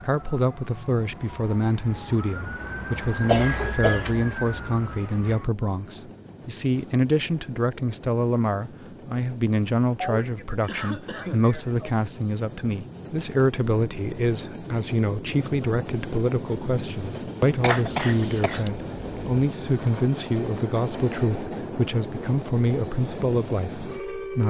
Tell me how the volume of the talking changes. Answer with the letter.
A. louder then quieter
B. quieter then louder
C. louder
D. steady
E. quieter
D.